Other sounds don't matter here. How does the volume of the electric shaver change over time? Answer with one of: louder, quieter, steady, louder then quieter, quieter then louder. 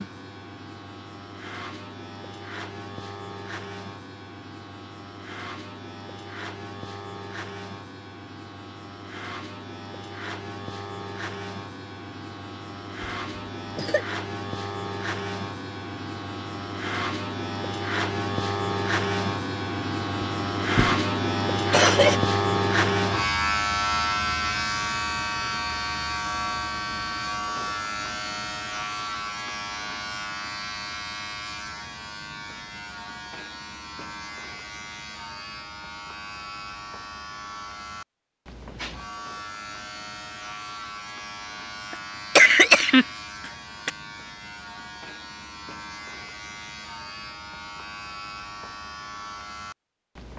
louder then quieter.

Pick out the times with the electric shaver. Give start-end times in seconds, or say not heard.
0.0-50.3.